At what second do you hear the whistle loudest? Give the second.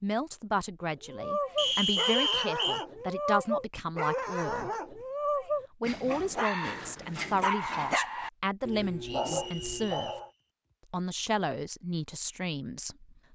2 s.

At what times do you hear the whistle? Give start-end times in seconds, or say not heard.
1.6-2.9, 9.0-10.2.